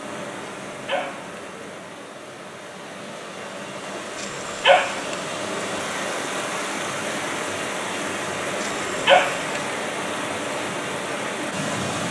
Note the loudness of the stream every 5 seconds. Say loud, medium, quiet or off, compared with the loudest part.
medium, loud, loud.